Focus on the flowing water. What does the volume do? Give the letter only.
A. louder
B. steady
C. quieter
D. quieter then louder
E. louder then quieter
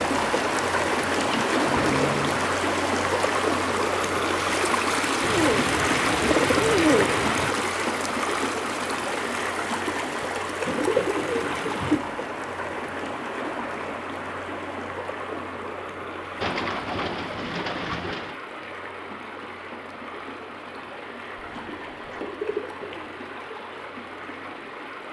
C.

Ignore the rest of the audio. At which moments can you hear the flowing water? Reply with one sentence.
You can hear the flowing water from 0.0 to 25.0 s.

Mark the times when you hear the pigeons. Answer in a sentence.
The pigeons can be heard from 1.2 to 2.5 s, from 5.2 to 7.5 s, from 10.7 to 12.0 s, from 16.4 to 18.4 s and from 21.4 to 23.1 s.